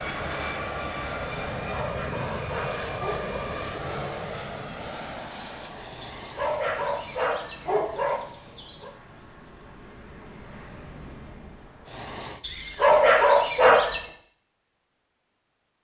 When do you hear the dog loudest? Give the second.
13 s.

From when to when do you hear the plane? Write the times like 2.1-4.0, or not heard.
0.0-12.4.